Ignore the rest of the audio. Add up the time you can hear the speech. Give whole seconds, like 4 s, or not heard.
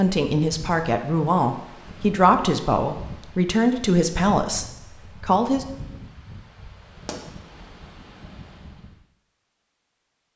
6 s.